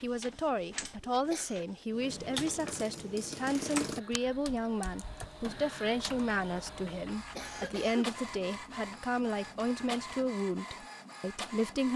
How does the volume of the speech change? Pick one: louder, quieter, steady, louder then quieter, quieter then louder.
steady.